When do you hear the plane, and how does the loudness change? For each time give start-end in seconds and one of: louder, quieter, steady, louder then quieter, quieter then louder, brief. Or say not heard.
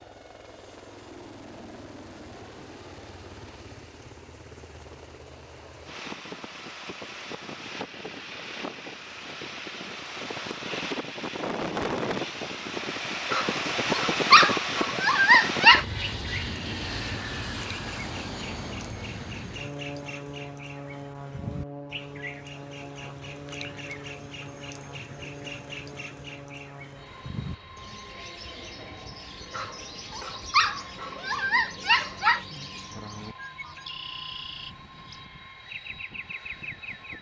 0.0-37.1 louder then quieter.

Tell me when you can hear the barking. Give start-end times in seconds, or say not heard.
13.3-15.8, 29.5-32.5.